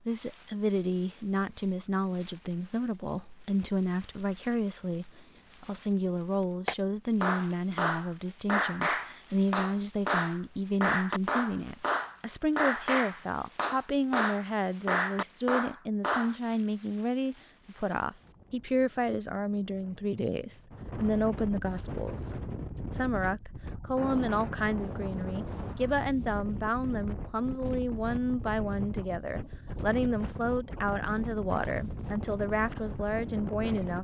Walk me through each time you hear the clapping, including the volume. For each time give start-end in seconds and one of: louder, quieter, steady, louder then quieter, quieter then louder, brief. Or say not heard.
6.7-16.4 steady.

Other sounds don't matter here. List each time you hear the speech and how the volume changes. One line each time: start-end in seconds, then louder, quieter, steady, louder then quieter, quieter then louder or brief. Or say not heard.
0.1-33.9 steady.